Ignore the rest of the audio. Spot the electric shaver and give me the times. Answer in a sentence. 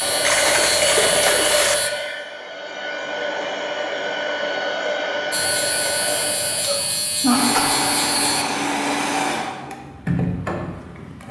You can hear the electric shaver from 0.0 to 1.9 s and from 5.3 to 8.4 s.